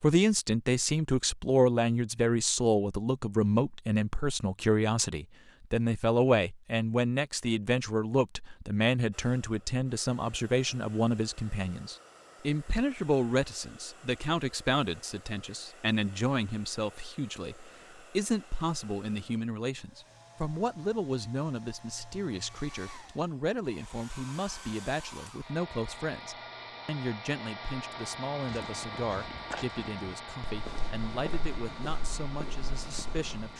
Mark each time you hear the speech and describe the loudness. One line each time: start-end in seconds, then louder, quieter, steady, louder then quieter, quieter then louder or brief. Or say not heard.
0.0-33.5 quieter.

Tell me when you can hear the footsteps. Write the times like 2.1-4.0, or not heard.
28.4-33.5.